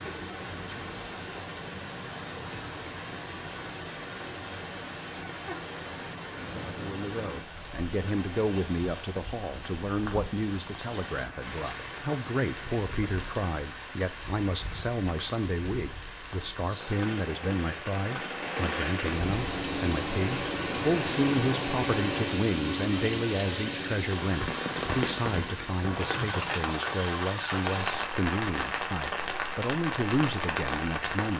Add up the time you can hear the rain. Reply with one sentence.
The rain can be heard for 31 seconds in total.